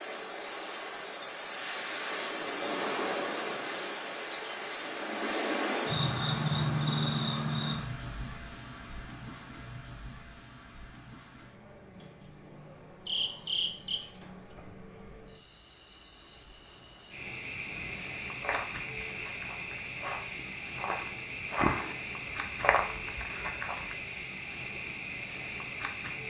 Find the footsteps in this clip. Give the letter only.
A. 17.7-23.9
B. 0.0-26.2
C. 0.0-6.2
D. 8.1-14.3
A.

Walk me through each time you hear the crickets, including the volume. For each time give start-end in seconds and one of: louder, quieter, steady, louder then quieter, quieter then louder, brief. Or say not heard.
0.0-26.2 quieter.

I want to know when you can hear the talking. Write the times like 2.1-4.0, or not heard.
not heard.